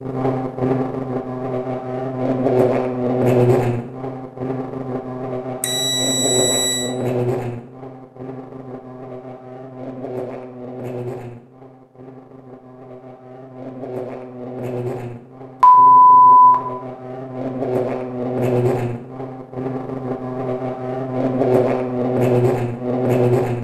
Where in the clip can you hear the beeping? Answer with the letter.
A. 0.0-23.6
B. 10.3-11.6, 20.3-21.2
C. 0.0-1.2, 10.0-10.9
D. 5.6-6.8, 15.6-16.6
D.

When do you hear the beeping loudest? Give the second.
16 s.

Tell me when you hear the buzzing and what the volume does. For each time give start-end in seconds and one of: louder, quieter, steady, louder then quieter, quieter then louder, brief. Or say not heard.
0.0-23.6 quieter then louder.